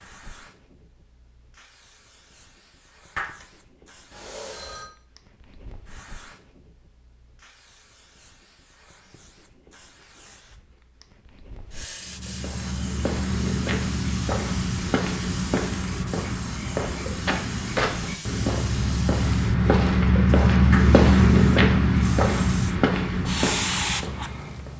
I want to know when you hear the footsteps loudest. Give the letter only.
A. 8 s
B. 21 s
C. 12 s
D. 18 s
B.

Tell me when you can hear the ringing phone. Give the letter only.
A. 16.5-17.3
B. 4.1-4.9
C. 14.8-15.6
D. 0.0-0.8
B.